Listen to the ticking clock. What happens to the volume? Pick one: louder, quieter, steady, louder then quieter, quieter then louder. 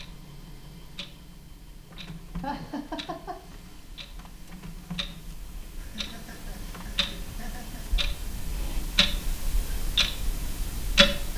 louder.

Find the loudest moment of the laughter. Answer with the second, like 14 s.
3 s.